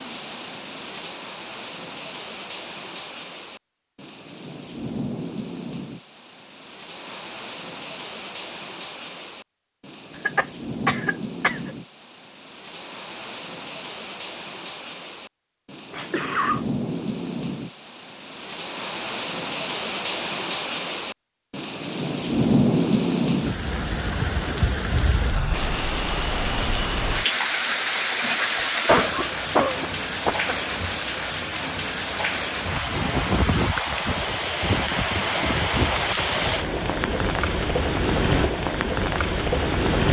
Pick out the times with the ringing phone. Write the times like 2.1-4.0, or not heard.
34.5-35.5.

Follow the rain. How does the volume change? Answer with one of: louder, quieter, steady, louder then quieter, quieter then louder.
louder.